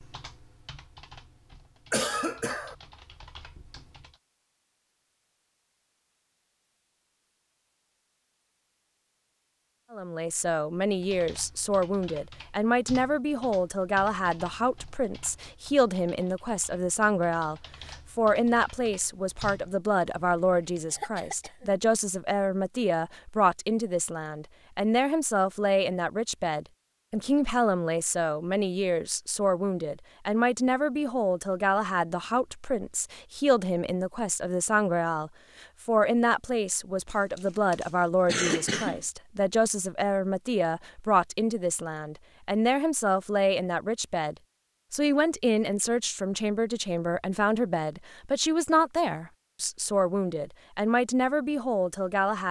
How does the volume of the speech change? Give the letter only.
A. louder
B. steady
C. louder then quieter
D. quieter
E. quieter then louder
B.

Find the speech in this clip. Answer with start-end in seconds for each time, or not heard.
9.9-52.4.